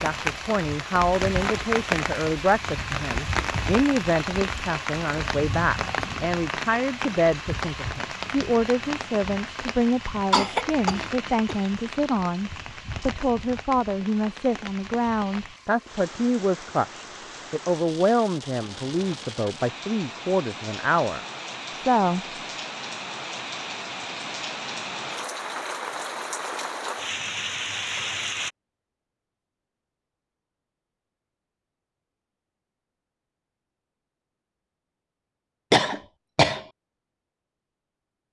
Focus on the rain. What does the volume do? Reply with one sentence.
The volume of the rain goes down, then up.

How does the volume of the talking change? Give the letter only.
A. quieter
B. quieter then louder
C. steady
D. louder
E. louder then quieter
C.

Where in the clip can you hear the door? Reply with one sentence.
The door can't be heard in this clip.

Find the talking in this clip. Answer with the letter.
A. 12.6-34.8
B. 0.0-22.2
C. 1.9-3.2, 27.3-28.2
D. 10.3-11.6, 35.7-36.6
B.